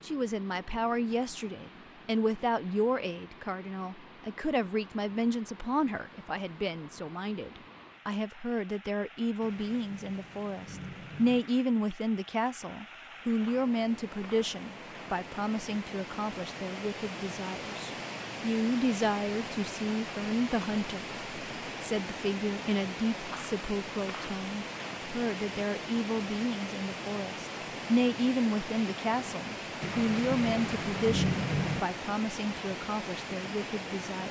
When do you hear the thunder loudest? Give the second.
31 s.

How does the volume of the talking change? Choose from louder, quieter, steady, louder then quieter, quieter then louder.
steady.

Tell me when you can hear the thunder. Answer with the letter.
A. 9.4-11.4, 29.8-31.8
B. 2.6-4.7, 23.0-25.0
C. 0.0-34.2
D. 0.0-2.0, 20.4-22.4
A.